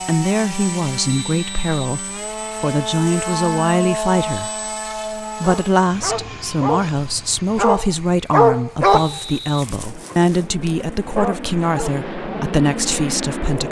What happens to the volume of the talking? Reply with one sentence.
The volume of the talking stays about the same.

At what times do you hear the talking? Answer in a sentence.
You can hear the talking from 0.1 to 13.6 s.